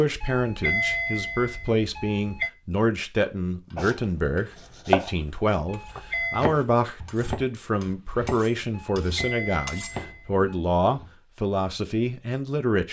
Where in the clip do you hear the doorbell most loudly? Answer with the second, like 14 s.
1 s.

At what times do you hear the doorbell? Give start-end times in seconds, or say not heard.
0.2-2.5, 5.7-6.5, 8.7-10.4.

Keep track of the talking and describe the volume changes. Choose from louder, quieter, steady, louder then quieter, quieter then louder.
steady.